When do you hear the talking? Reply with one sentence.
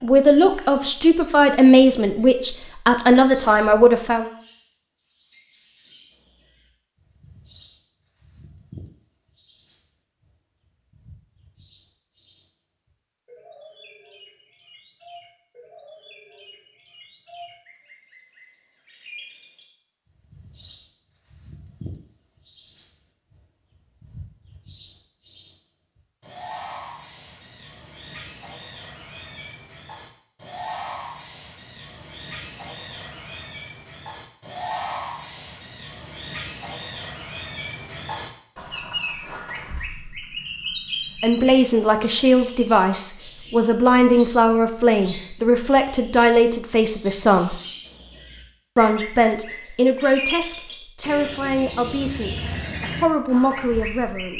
You can hear the talking from 0.0 to 4.3 s, from 41.2 to 47.5 s and from 48.8 to 54.3 s.